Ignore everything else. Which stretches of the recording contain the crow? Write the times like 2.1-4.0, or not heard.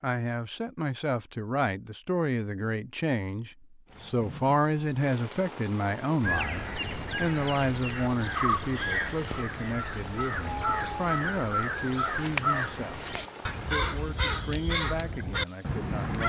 6.2-16.2.